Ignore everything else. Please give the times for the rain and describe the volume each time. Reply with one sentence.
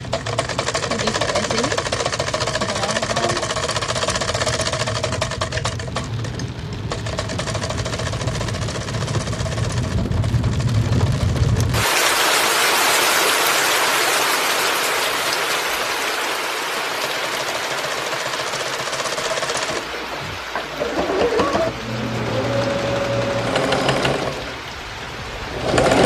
You can hear the rain from 0.0 to 25.9 s, getting louder then quieter.